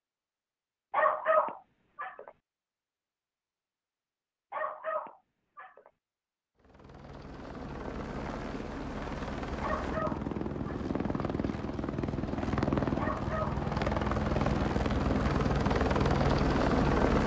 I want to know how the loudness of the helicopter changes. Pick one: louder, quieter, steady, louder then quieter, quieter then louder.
louder.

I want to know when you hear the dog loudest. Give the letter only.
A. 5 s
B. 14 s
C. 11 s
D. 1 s
D.